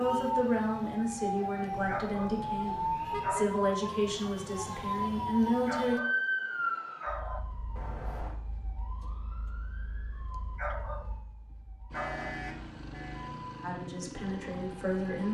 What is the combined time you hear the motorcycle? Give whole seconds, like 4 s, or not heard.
3 s.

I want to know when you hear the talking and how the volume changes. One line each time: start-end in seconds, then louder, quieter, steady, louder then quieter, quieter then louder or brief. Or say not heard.
0.0-6.0 steady
13.6-15.2 brief.